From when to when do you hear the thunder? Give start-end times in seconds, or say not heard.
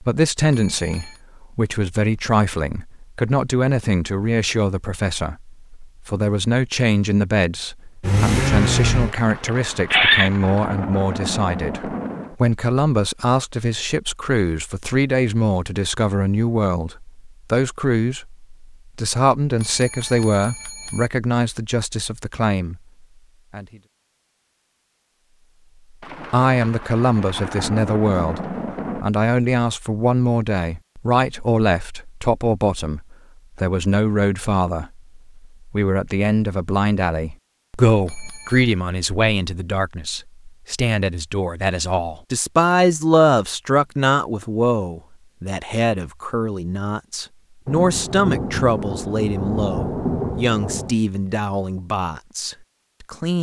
9.1-12.3, 26.0-29.1, 47.6-51.0.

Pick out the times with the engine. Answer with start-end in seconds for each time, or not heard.
8.0-10.3.